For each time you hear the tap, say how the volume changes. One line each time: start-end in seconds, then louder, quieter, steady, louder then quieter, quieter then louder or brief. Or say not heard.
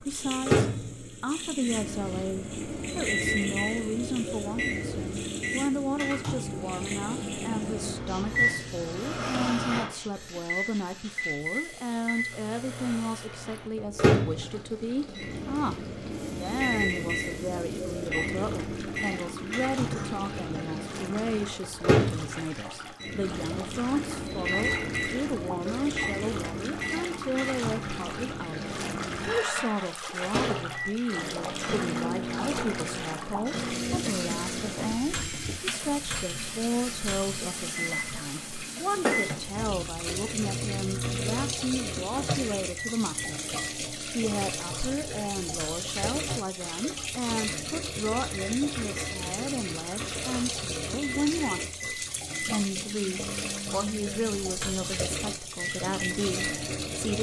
0.0-57.1 louder.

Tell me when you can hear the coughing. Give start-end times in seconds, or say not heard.
19.9-20.6, 34.0-35.4.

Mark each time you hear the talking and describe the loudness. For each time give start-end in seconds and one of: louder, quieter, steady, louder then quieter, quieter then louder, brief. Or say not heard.
0.0-57.1 steady.